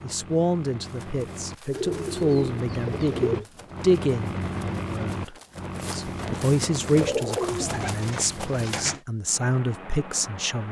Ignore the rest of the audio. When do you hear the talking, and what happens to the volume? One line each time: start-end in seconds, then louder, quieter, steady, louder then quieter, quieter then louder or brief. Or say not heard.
0.0-10.6 quieter then louder.